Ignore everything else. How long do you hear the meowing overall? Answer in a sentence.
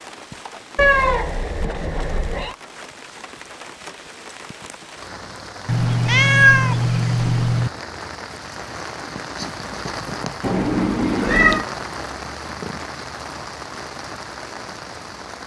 You can hear the meowing for 5 seconds altogether.